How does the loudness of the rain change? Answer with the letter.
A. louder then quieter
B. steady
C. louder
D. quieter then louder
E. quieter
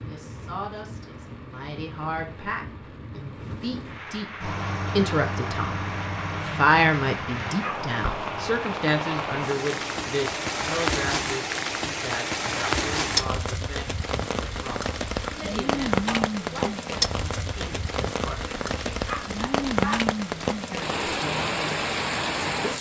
C.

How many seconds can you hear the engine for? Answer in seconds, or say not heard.
6 s.